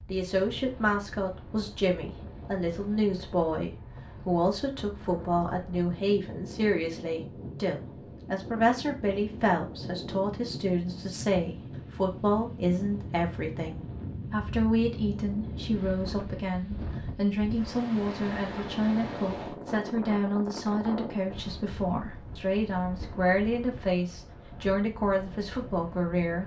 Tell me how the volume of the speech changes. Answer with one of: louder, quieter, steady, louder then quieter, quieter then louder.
steady.